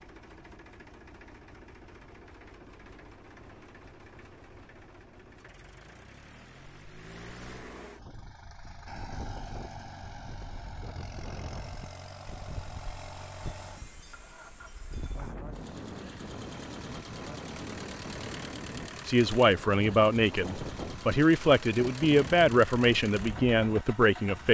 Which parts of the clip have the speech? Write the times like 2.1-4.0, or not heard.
19.1-24.4.